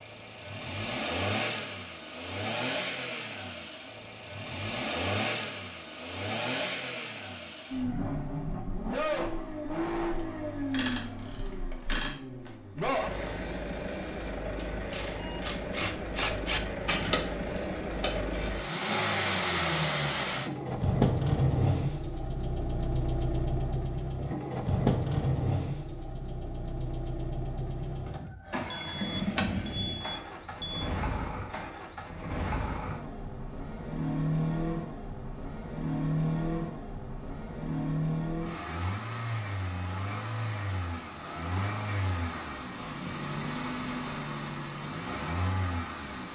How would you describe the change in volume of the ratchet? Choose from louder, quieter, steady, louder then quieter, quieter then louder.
quieter then louder.